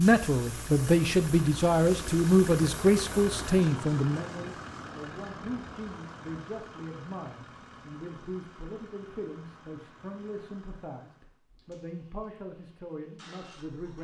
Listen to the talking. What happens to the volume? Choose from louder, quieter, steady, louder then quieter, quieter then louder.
quieter.